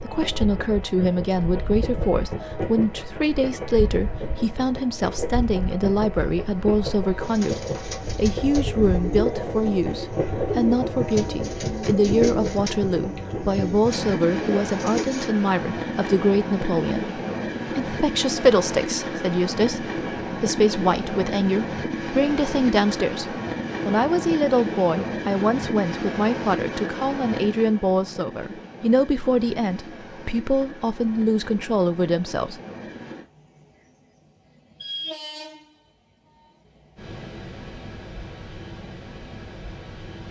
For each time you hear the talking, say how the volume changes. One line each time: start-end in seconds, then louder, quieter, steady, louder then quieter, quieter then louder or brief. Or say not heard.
0.0-32.6 steady.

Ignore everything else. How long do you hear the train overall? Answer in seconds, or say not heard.
40 s.